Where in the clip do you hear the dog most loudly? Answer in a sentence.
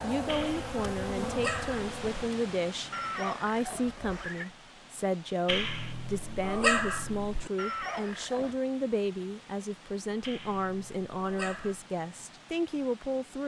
The volume of the dog peaks at 7 seconds.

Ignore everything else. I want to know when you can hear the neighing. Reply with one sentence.
You can hear the neighing from 2.9 to 4.5 s and from 7.5 to 8.6 s.